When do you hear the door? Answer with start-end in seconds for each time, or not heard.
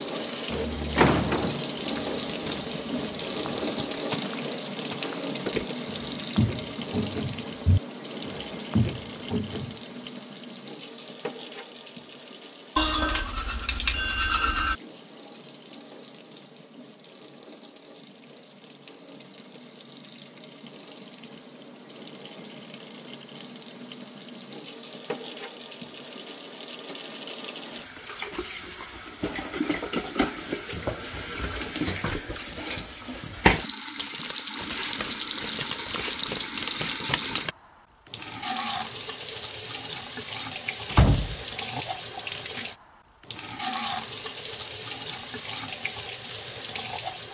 0.5-1.6, 40.9-41.8.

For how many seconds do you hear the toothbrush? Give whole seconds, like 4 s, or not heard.
2 s.